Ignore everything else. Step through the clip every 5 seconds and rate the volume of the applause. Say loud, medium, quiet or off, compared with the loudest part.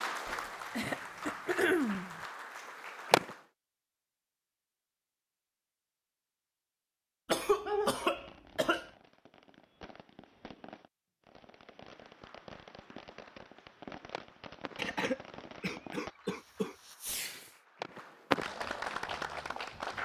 loud, off, quiet, loud.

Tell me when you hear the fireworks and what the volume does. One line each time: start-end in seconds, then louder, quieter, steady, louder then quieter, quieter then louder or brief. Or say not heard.
8.2-17.6 louder.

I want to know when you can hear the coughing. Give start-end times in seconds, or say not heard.
0.2-2.2, 7.2-8.9, 14.8-16.8.